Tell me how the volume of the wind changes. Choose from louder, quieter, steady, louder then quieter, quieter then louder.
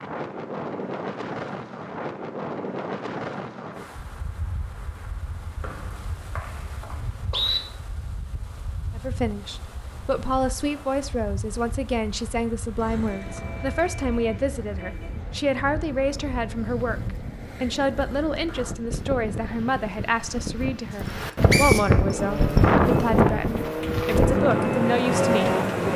quieter then louder.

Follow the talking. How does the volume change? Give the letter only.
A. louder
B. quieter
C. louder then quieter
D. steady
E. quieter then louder
D.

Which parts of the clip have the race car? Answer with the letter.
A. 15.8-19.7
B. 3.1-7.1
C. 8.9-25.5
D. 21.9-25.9
D.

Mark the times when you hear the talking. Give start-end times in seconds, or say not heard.
8.9-25.5.